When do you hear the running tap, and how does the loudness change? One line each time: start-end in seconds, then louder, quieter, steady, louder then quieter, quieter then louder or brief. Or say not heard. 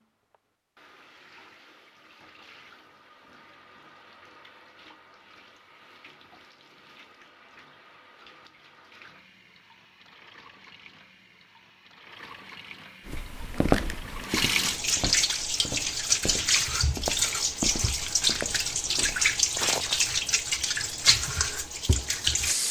0.0-22.6 louder.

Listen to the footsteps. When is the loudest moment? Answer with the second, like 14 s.
14 s.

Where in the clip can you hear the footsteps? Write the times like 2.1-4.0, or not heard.
13.1-20.0.